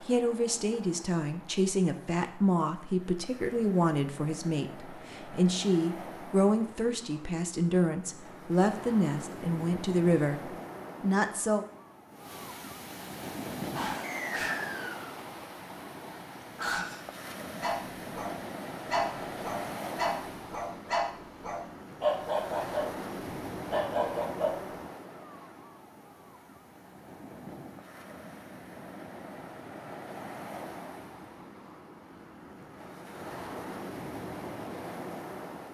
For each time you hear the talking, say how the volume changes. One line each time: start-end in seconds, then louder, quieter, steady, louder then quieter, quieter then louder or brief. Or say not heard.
0.0-11.7 steady.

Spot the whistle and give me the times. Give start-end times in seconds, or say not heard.
14.0-15.2.